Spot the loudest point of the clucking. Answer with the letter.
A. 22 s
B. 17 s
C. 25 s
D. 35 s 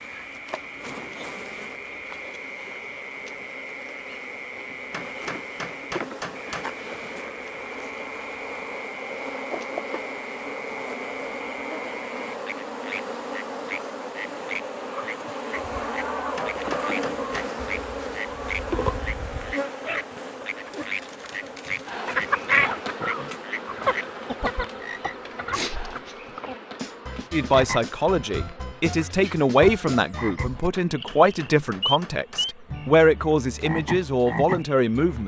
A.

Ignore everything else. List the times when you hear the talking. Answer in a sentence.
You can hear the talking from 27.3 to 35.2 s.